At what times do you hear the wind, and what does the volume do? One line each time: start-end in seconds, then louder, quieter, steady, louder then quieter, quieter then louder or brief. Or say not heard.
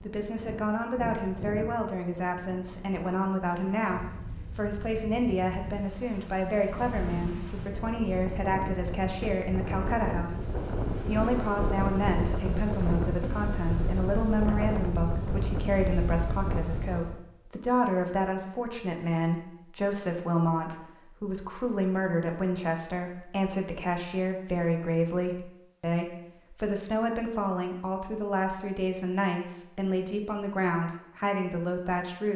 0.0-17.2 louder.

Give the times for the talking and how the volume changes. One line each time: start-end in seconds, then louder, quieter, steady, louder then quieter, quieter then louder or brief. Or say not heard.
0.0-32.3 steady.